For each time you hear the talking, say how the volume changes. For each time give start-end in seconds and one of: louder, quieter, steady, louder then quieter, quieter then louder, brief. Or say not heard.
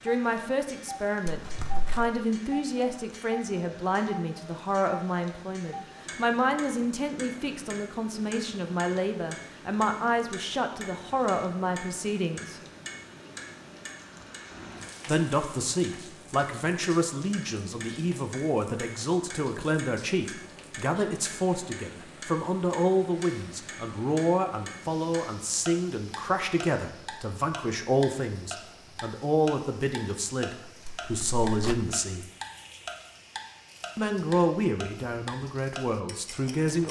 0.1-12.6 steady
15.1-32.2 steady
34.0-36.8 brief.